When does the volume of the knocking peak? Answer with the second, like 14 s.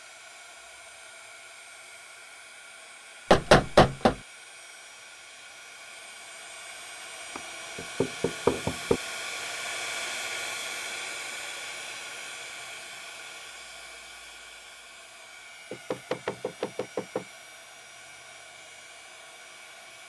4 s.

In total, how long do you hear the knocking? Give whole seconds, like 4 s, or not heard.
4 s.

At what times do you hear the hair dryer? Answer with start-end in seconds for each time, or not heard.
0.0-20.0.